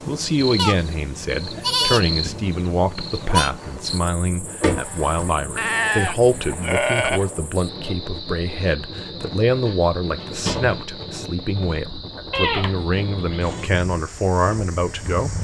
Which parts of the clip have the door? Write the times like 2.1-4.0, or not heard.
4.6-5.3, 9.7-10.8.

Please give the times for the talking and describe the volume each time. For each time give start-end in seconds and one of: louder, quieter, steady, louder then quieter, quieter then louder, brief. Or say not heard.
0.1-15.3 steady.